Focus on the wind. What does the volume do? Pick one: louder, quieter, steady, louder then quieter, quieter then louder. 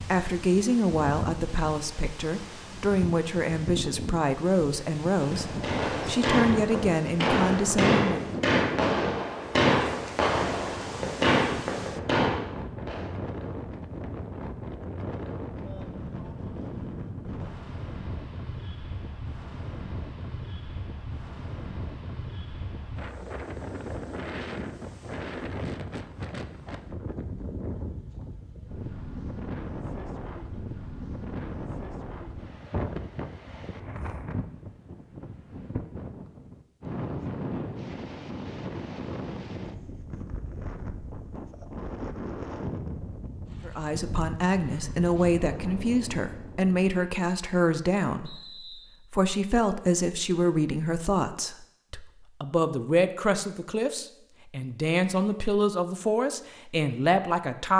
steady.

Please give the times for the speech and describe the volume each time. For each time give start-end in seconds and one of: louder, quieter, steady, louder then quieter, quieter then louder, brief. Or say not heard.
0.1-8.3 steady
43.6-57.7 steady.